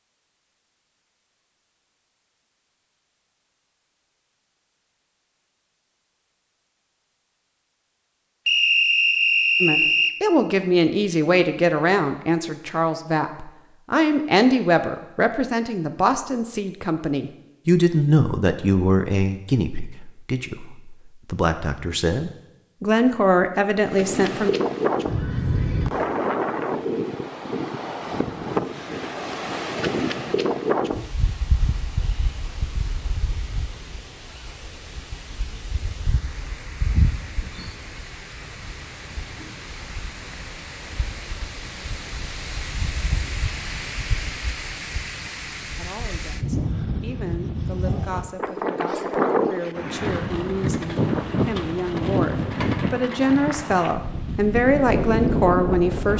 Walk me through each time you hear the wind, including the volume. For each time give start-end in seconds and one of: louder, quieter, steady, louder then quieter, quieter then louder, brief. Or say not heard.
23.9-56.1 quieter then louder.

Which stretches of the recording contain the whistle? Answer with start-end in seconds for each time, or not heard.
8.4-10.2.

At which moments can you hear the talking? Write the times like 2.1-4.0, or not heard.
9.6-24.6, 45.8-56.1.